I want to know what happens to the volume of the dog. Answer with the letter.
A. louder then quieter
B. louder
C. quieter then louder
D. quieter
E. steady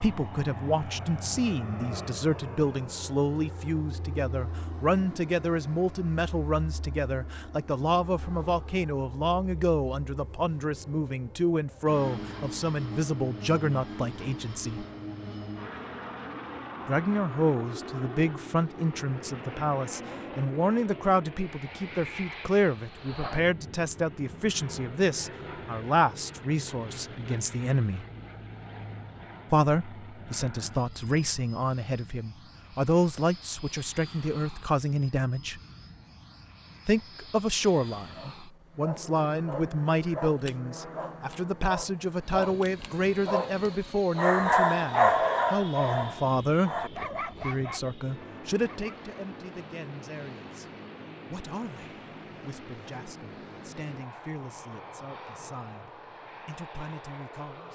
A.